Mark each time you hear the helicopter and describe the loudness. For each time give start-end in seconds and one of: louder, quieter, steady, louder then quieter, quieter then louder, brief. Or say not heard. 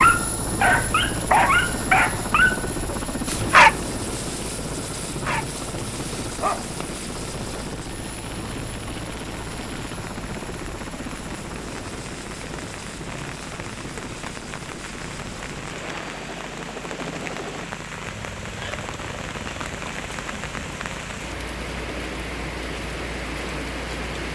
0.0-24.3 quieter.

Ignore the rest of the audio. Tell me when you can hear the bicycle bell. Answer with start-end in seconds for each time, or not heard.
not heard.